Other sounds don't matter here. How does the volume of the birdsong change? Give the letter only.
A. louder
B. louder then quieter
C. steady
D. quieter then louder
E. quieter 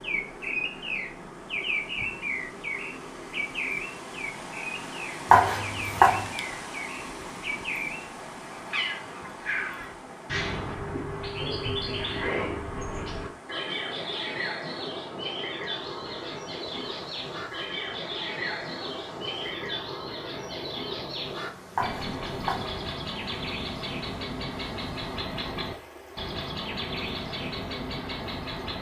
C.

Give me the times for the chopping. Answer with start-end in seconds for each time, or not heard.
5.3-6.2, 21.8-22.7.